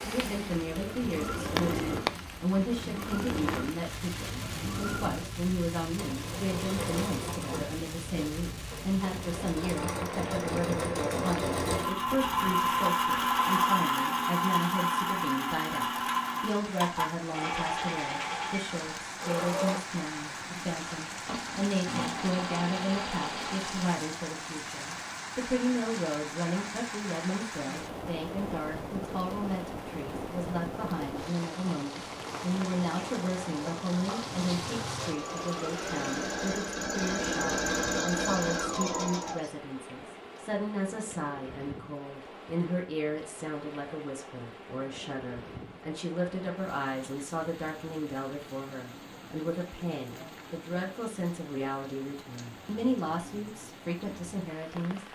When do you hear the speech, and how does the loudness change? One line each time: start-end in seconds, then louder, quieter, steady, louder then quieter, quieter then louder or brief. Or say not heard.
0.0-55.0 steady.